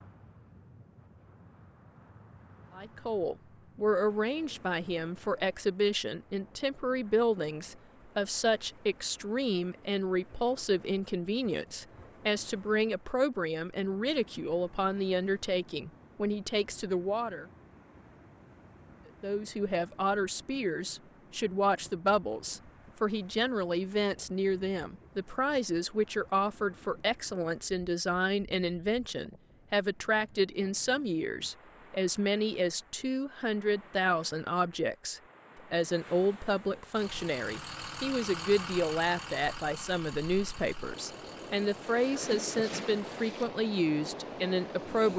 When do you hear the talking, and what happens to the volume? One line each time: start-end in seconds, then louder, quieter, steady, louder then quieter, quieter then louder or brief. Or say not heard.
2.8-17.4 steady
19.2-45.1 steady.